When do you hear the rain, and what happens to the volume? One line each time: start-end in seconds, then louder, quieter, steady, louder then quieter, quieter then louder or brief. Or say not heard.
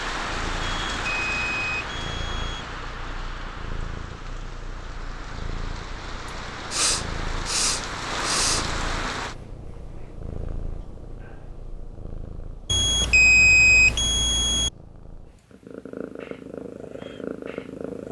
0.0-9.3 quieter then louder.